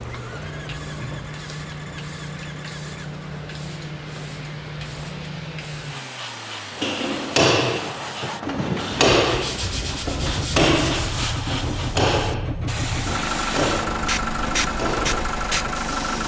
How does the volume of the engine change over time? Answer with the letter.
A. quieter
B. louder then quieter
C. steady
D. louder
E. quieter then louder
D.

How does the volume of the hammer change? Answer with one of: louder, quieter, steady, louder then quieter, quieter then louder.
quieter.